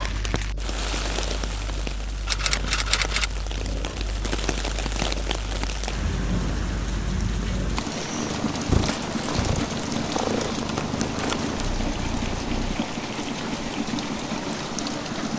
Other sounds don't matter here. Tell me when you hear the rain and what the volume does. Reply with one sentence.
You can hear the rain from 0.0 to 15.3 s, at a steady volume.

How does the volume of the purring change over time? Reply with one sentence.
The volume of the purring goes up.